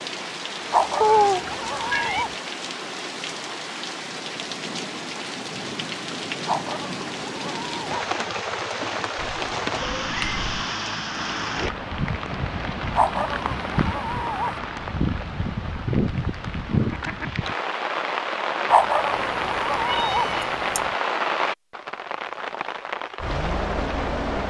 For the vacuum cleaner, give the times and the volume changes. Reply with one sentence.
The vacuum cleaner can't be heard in this clip.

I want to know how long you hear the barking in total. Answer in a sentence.
You can hear the barking for 6 seconds altogether.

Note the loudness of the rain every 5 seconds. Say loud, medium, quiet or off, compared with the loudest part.
medium, loud, loud, loud, loud.